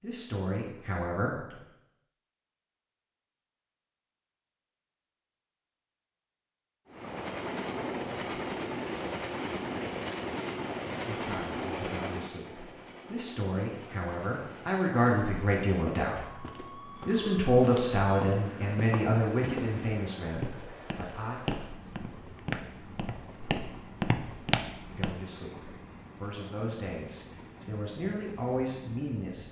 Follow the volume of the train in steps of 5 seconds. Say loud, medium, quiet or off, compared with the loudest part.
off, loud, loud, quiet, quiet, quiet.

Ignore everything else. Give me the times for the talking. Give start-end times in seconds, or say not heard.
0.0-1.5, 11.1-16.4, 17.1-21.4, 24.9-29.4.